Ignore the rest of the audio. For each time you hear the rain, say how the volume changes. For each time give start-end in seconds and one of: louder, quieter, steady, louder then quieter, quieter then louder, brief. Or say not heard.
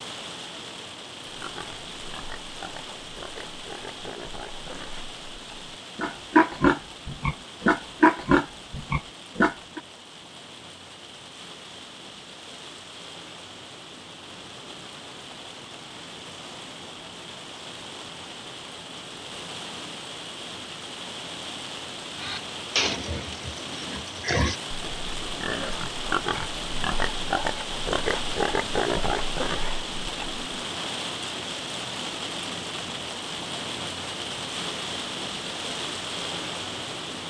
0.0-37.2 louder.